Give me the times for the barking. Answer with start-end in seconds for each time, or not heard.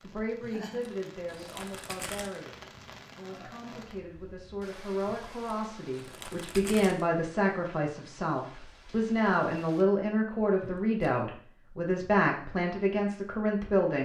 not heard.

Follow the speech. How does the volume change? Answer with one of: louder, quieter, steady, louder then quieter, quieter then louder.
louder.